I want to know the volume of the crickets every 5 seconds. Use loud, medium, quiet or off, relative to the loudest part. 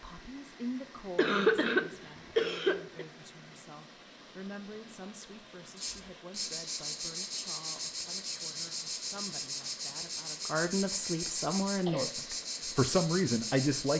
off, loud, loud.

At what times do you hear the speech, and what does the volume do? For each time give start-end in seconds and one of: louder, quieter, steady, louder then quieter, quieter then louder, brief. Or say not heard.
0.0-13.9 quieter then louder.